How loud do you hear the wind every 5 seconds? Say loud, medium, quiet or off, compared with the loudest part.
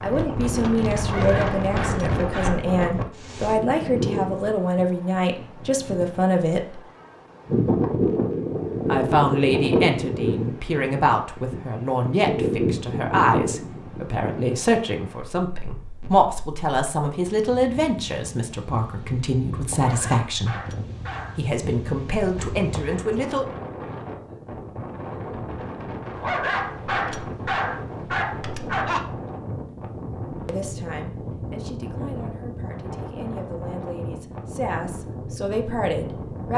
loud, loud, loud, quiet, medium, medium, medium, medium.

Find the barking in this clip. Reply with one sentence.
You can hear the barking from 1.0 to 2.6 s, from 19.7 to 21.4 s and from 26.1 to 29.0 s.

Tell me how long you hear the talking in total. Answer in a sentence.
The talking can be heard for 27 seconds in total.